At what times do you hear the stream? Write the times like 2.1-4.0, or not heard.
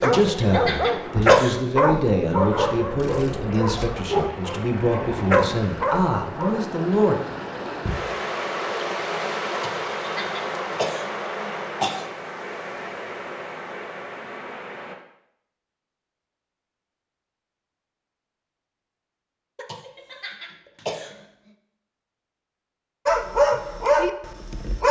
0.2-14.9.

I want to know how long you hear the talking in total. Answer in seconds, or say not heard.
7 s.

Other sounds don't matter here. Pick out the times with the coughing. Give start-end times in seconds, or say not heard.
0.0-2.0, 9.6-12.1, 19.6-21.2.